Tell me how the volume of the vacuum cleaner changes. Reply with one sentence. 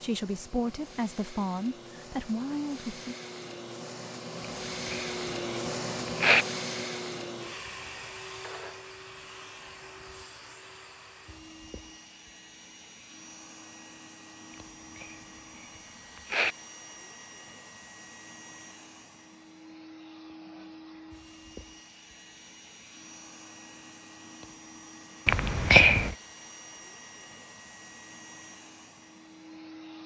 The volume of the vacuum cleaner goes down.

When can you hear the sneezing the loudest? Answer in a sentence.
The volume of the sneezing peaks at 26 seconds.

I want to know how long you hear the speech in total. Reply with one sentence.
The speech can be heard for 3 seconds in total.